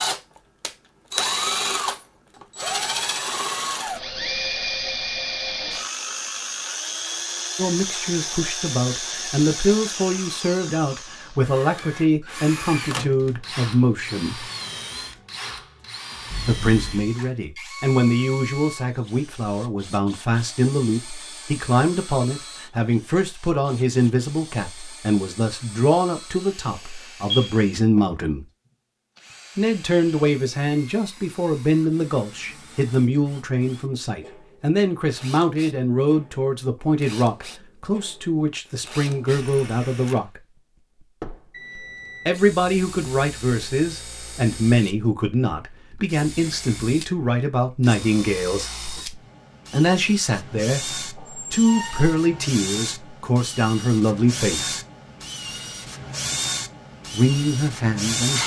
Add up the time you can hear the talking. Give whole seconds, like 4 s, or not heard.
43 s.